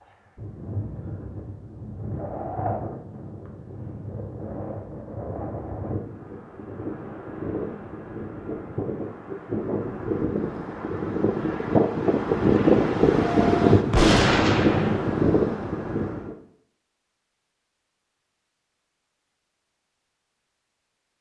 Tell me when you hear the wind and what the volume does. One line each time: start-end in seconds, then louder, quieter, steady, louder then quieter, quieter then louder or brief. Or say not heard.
0.0-16.4 louder.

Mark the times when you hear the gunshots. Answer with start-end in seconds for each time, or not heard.
13.9-15.2.